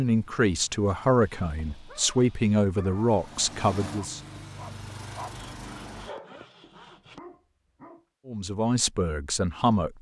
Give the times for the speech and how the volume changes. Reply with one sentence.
You can hear the speech from 0.0 to 4.2 s, at a steady volume; and briefly from 8.2 to 9.9 s.